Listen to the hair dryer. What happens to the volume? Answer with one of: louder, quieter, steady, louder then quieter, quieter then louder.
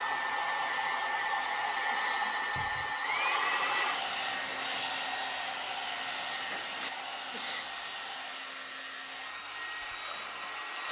quieter.